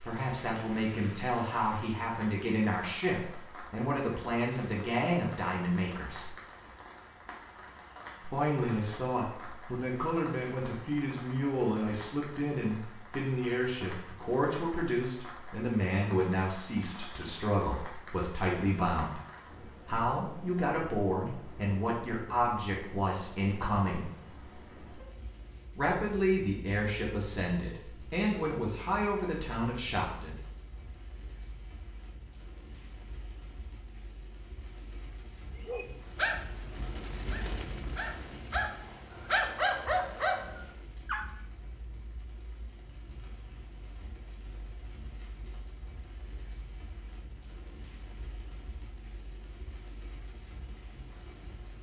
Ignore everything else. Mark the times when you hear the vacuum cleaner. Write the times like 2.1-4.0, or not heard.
not heard.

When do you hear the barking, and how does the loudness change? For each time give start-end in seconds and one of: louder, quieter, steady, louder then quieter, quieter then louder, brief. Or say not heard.
35.6-41.3 quieter then louder.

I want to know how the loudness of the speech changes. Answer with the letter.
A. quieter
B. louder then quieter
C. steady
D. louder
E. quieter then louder
C.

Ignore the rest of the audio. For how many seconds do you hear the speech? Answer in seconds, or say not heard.
26 s.